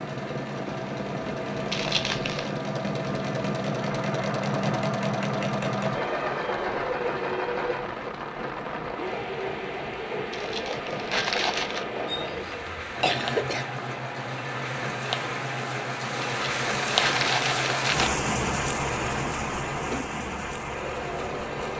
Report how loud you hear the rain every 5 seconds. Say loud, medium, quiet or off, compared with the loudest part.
medium, medium, medium, loud, medium.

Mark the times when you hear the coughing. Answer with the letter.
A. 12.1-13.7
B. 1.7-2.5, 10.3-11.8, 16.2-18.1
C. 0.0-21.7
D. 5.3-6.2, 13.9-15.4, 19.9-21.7
A.